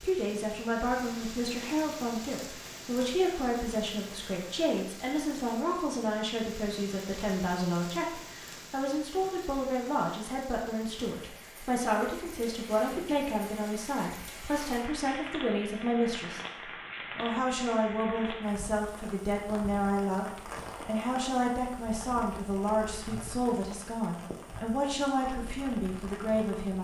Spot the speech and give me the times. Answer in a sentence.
You can hear the speech from 0.0 to 16.4 s and from 17.1 to 26.7 s.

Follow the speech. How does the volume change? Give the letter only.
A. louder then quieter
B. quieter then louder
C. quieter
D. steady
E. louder
D.